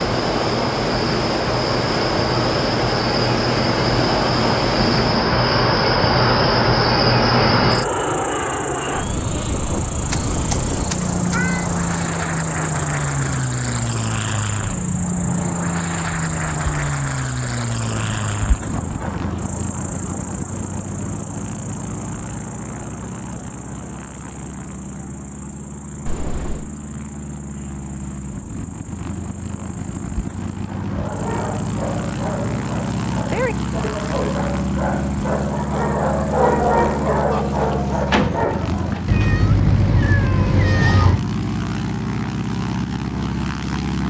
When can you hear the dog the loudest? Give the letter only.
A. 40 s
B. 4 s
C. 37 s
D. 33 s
C.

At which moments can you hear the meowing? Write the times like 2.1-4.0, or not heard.
10.1-12.1, 26.1-26.7, 39.0-41.2.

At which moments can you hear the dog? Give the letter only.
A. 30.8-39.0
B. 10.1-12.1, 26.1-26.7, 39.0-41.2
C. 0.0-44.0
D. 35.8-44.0
A.